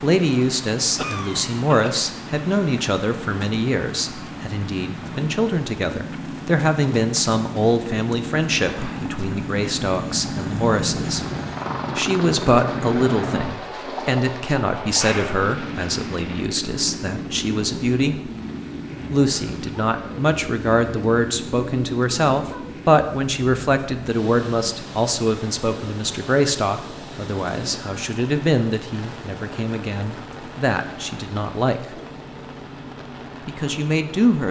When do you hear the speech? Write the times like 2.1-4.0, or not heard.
0.0-11.2, 11.9-18.3, 19.1-31.8, 33.5-34.4.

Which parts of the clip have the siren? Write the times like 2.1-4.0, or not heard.
not heard.